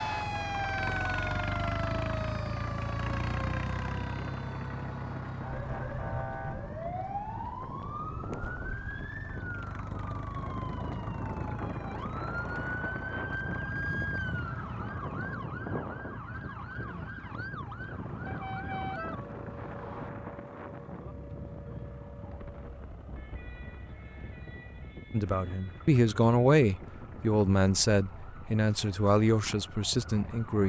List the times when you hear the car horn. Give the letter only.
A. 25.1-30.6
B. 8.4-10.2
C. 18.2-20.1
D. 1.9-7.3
C.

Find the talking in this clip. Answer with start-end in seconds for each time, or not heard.
25.1-30.6.